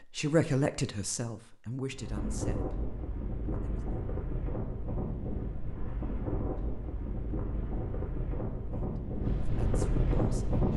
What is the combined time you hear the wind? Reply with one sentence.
You can hear the wind for 9 seconds altogether.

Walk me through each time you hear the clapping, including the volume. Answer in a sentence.
You can't hear the clapping here.